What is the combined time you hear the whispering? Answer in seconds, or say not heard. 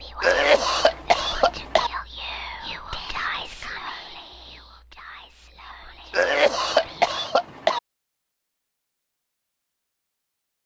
7 s.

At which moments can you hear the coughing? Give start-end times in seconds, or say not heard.
0.2-1.9, 6.1-7.8.